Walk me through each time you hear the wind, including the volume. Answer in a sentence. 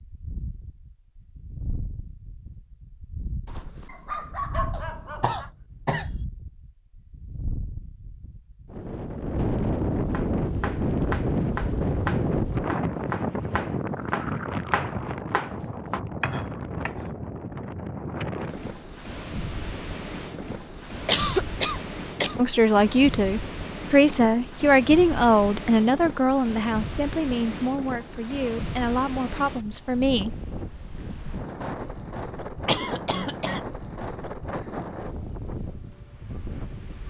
You can hear the wind from 0.0 to 37.0 s, getting louder then quieter.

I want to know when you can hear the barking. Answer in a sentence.
You can hear the barking from 3.5 to 5.5 s.